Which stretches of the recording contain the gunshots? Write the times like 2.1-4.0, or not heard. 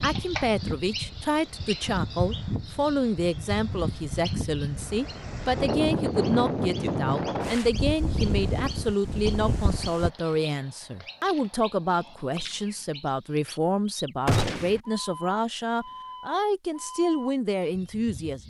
14.2-14.8.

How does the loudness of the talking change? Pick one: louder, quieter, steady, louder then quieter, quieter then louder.
steady.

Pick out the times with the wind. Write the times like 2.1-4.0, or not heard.
0.0-10.1.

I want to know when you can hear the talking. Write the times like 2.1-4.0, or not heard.
0.0-18.4.